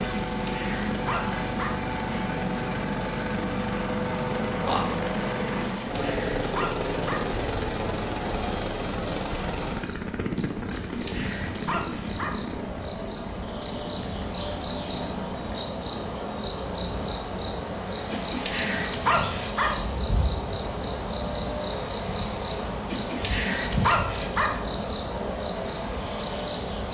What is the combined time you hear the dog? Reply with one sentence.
You can hear the dog for 8 seconds altogether.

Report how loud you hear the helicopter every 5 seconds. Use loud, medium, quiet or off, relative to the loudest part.
loud, loud, medium, medium, medium, medium.